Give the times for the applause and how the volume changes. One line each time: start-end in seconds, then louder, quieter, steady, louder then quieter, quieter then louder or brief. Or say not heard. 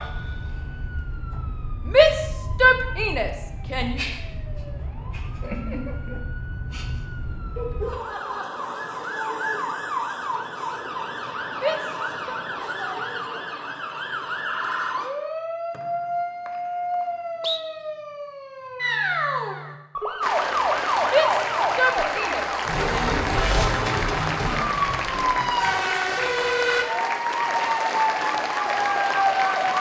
20.2-29.7 steady.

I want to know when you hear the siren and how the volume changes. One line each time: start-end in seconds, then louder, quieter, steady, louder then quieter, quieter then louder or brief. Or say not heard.
0.0-29.7 louder.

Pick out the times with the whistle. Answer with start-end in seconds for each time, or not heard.
15.7-17.6.